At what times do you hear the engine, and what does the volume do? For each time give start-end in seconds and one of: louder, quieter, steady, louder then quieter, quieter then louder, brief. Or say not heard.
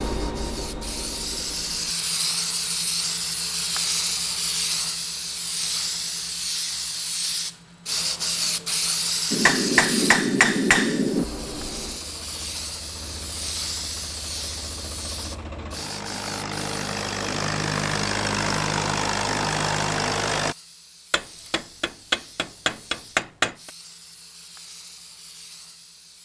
0.0-1.9 brief
11.2-20.6 louder.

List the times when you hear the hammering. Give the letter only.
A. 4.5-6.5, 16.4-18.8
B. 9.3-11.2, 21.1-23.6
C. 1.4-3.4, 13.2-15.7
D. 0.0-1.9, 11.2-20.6
B.